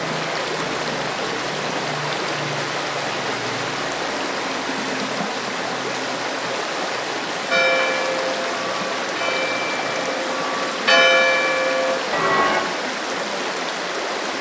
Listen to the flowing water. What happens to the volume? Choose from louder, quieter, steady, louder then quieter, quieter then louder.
steady.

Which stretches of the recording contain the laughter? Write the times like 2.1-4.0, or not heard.
not heard.